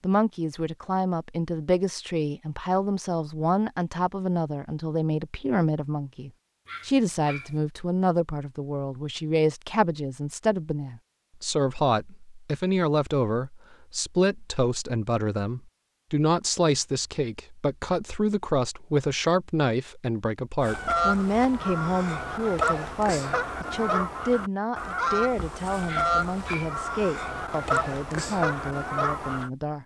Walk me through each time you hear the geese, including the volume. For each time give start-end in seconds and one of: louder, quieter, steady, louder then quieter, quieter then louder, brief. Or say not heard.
20.6-29.5 steady.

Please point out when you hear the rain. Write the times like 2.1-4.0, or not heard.
not heard.